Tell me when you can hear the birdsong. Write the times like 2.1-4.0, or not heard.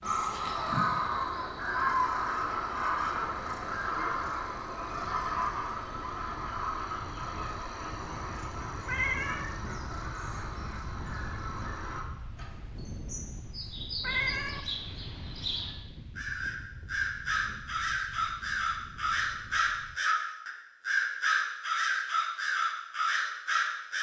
0.0-23.9.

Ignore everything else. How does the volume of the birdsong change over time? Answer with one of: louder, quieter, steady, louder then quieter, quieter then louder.
quieter then louder.